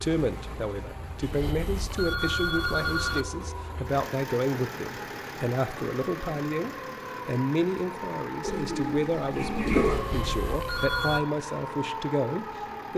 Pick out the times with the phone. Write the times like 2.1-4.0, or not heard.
1.2-3.2, 9.9-11.2.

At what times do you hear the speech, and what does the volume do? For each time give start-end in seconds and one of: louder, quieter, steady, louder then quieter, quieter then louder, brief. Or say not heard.
0.0-12.9 steady.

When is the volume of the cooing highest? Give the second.
10 s.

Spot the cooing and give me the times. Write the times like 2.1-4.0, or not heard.
8.4-10.0.